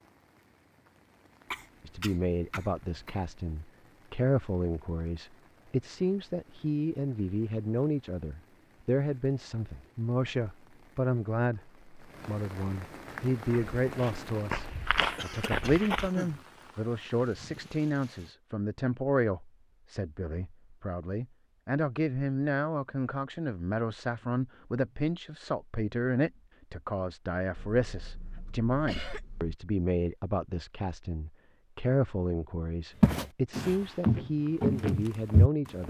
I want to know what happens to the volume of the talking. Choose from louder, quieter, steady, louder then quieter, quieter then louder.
steady.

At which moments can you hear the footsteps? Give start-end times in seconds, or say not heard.
13.1-16.1, 33.0-35.8.